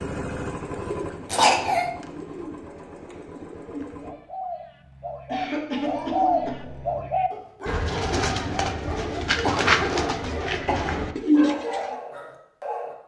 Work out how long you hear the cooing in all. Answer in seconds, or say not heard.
11 s.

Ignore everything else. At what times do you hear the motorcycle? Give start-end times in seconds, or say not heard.
0.0-4.2.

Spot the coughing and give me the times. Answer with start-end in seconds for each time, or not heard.
1.3-1.9, 5.2-6.6, 9.4-10.9.